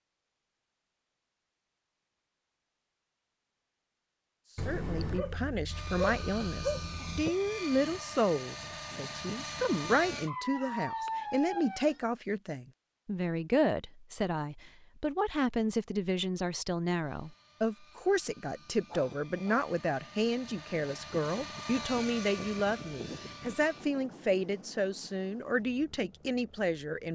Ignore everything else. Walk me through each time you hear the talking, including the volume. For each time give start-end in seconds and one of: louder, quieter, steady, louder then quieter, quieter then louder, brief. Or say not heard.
4.7-27.1 steady.